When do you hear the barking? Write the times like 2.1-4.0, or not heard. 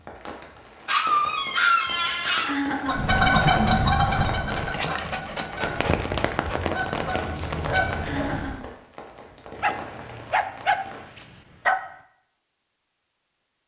0.8-2.5, 4.7-6.8, 9.6-11.8.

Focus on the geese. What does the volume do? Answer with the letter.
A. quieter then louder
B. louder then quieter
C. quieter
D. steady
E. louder
A.